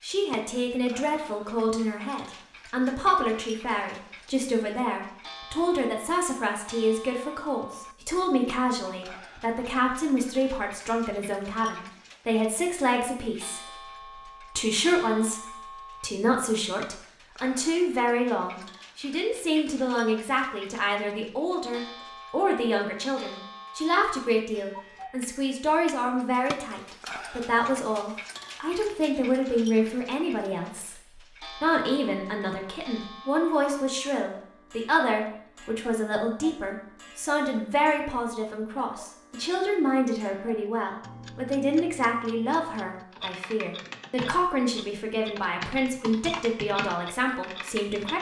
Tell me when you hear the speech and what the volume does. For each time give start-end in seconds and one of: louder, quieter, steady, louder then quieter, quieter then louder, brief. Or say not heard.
0.0-48.1 steady.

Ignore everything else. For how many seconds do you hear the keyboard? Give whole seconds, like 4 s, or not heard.
5 s.